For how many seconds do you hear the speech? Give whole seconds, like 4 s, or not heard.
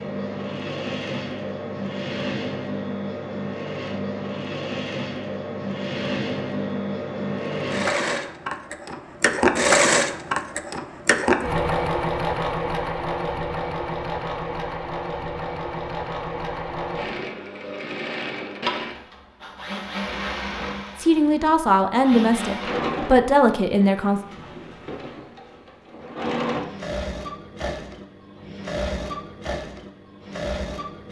3 s.